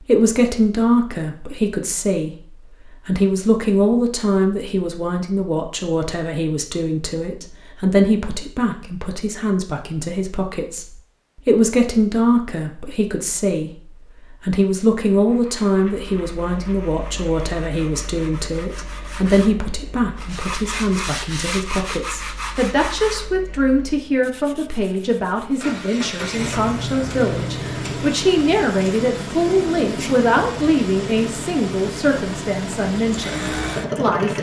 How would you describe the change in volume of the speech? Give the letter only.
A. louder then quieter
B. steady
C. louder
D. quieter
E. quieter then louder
B.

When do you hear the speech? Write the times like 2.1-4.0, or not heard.
0.0-34.3.